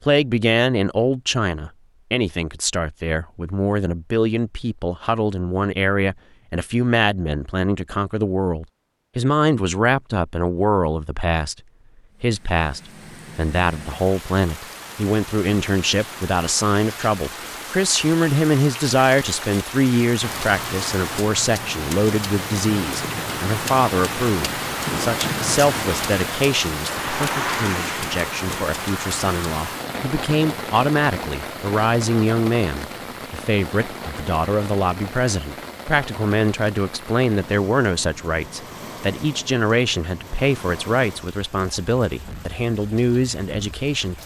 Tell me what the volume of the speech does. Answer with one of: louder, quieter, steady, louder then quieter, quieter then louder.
steady.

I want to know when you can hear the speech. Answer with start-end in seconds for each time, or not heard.
0.0-11.6, 12.2-44.1.